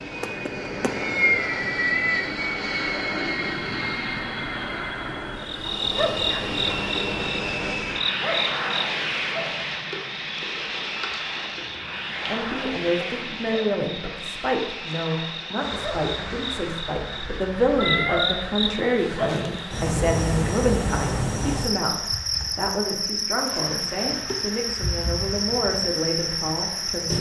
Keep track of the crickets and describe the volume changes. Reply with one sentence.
The volume of the crickets goes down, then up.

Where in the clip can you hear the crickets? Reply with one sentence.
The crickets can be heard from 5.3 to 27.1 s.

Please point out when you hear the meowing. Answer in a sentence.
You can hear the meowing from 0.2 to 2.2 s and from 17.0 to 18.6 s.